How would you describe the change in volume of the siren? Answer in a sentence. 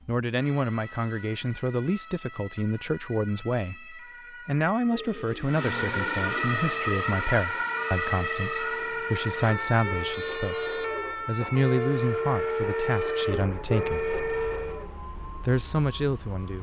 The volume of the siren goes up, then down.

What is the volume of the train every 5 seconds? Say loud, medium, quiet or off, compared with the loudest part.
off, medium, loud, off.